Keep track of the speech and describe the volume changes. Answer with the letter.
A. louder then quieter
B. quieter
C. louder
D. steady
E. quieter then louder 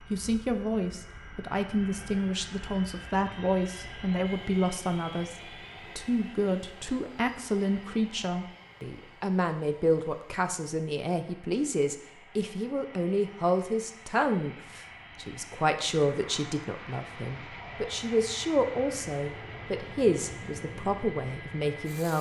D.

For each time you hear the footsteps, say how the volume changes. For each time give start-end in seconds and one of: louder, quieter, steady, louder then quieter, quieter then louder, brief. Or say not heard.
not heard.